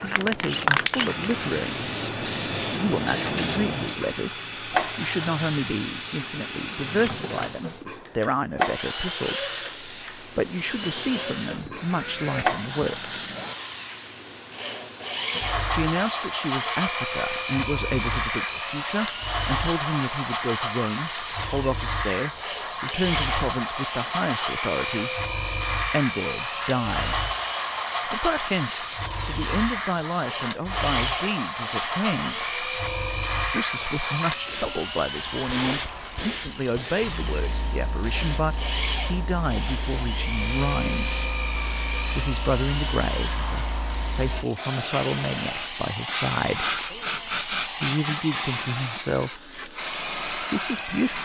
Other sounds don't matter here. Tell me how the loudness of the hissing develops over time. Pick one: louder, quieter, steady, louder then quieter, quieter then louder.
steady.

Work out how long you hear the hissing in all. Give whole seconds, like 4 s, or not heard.
51 s.